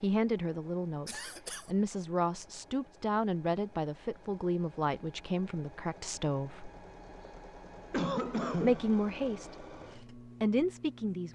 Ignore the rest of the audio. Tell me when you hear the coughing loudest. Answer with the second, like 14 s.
8 s.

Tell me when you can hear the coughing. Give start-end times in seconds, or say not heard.
1.1-1.7, 7.9-8.8.